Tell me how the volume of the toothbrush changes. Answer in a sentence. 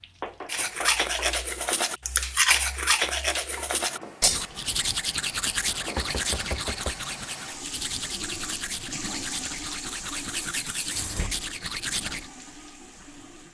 The volume of the toothbrush goes down.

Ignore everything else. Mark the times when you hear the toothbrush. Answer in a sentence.
You can hear the toothbrush from 0.5 to 12.3 s.